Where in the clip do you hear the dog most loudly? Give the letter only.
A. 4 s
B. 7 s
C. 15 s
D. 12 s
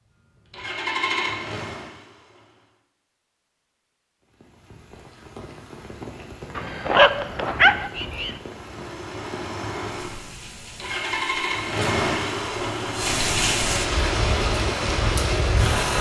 B.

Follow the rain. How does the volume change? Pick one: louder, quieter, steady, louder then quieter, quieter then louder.
louder.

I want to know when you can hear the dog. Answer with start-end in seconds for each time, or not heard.
6.5-8.3.